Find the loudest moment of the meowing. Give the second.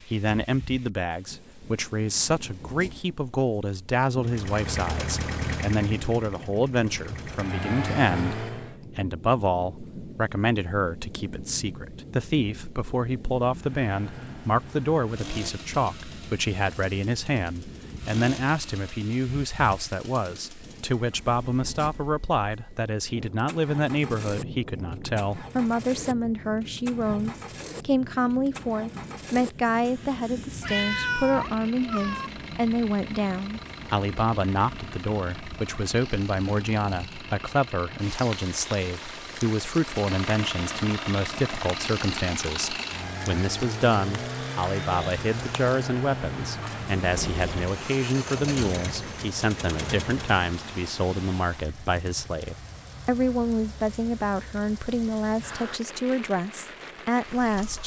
31 s.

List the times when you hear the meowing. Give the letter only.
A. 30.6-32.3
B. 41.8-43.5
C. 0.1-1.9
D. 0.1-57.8
A.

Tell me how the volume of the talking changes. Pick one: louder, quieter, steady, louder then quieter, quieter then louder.
steady.